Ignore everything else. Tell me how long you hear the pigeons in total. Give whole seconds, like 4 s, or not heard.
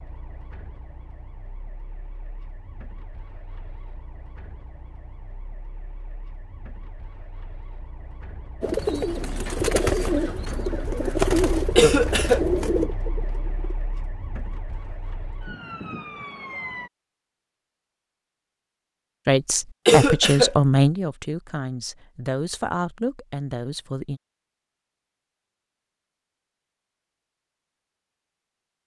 5 s.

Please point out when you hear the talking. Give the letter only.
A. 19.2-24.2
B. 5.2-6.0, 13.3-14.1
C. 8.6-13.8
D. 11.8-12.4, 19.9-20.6
A.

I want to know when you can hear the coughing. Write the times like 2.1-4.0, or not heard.
11.8-12.4, 19.9-20.6.